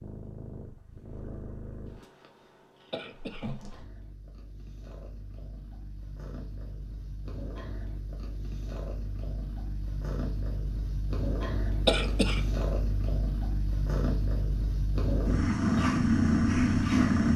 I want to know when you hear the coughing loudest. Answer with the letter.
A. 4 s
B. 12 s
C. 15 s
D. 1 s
B.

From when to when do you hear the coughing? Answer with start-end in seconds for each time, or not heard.
2.9-3.5, 11.8-12.4.